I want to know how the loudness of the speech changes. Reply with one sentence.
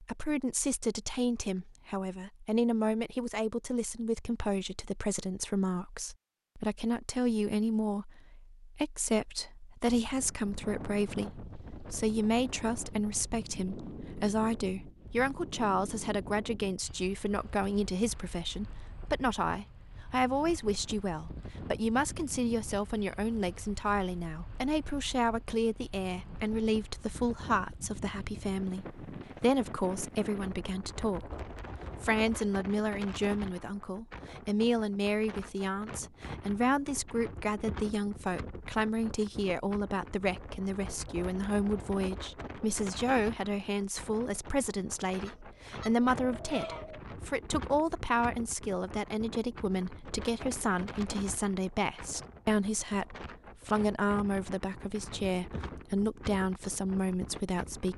The volume of the speech stays about the same.